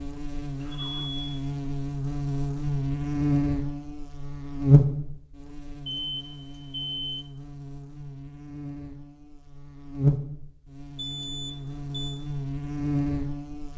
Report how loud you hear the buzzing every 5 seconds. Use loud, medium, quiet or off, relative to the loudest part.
loud, quiet, loud.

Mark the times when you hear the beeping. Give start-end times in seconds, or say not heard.
0.6-1.4, 5.8-7.3, 10.9-12.2.